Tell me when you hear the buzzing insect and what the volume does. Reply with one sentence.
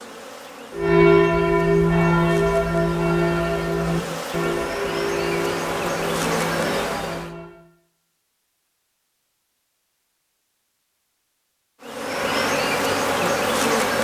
You can hear the buzzing insect from 0.0 to 7.3 s, getting louder; and briefly from 11.8 to 14.0 s.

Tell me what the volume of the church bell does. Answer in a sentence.
The volume of the church bell goes down.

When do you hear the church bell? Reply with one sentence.
You can hear the church bell from 0.7 to 7.6 s.